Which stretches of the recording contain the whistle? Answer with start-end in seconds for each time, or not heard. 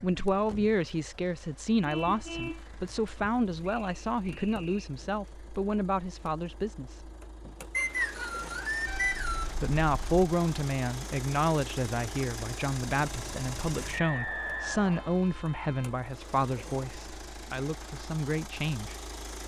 3.6-4.9, 7.7-9.6, 13.9-15.2.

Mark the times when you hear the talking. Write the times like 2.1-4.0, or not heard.
0.0-7.0, 9.6-18.9.